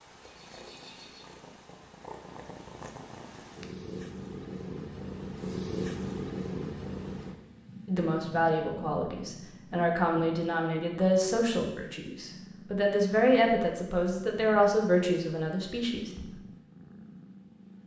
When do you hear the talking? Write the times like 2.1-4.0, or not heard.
7.8-16.2.